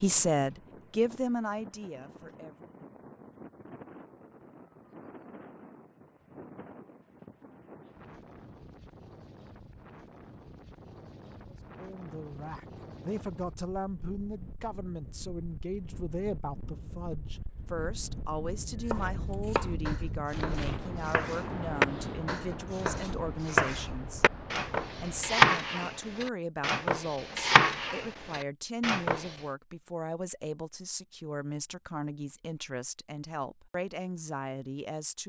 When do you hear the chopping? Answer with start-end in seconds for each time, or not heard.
18.9-29.3.